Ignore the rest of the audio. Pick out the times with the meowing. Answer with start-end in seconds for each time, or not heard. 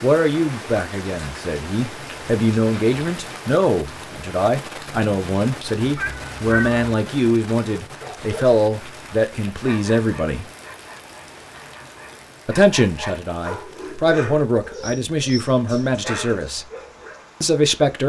6.0-6.8.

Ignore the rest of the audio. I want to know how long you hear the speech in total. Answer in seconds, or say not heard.
15 s.